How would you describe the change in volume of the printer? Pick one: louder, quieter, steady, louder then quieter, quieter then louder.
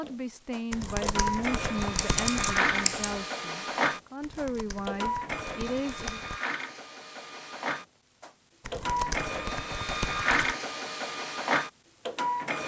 quieter then louder.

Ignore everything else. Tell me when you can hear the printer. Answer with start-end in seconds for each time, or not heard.
0.0-12.6.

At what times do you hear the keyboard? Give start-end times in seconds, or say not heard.
0.7-2.6, 4.2-6.4, 8.6-10.6.